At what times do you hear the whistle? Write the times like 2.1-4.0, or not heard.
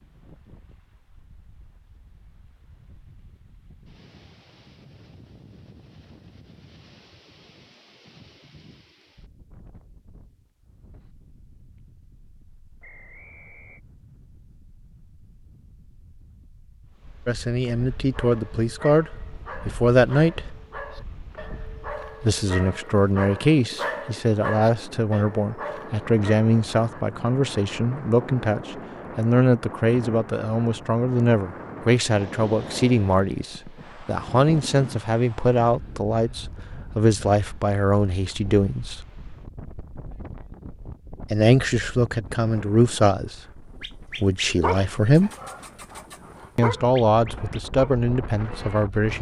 12.8-13.8.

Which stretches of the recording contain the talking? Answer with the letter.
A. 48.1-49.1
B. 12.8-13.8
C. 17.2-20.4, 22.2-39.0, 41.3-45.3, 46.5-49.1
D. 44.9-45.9
C.